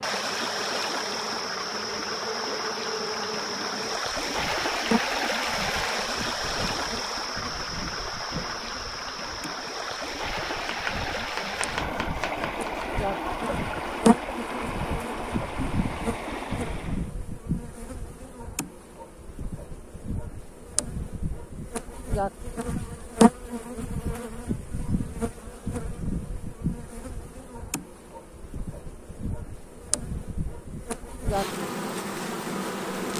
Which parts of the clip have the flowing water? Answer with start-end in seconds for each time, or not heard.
0.0-17.1.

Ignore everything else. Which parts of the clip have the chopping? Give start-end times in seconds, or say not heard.
10.7-13.1.